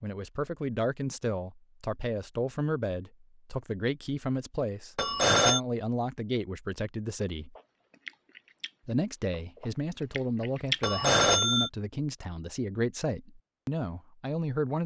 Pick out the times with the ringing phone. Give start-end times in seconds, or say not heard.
5.0-5.6, 10.8-11.7.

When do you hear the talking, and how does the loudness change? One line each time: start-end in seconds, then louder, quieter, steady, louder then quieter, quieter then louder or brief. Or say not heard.
0.0-7.5 steady
8.8-14.8 steady.